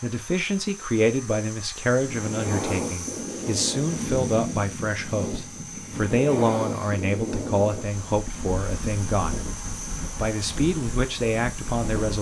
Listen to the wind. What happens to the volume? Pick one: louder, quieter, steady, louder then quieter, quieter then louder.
quieter.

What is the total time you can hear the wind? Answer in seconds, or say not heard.
10 s.